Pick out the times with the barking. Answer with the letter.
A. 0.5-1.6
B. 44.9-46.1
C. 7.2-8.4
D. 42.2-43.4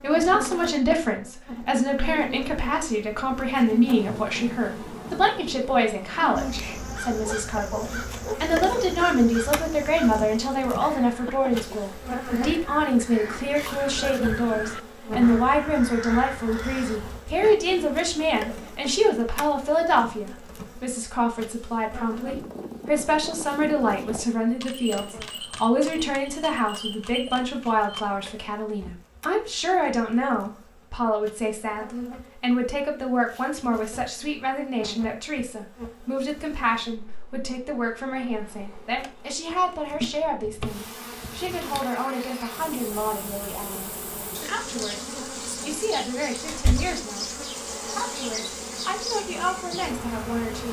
C.